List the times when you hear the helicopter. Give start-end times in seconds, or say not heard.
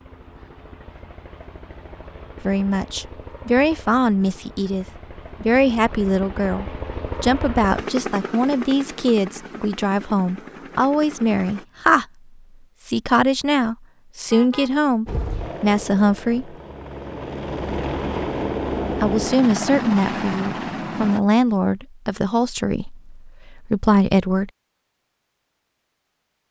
0.0-11.7, 15.1-21.2.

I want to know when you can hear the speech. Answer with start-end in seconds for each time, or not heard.
2.4-12.1, 12.8-16.6, 19.0-24.5.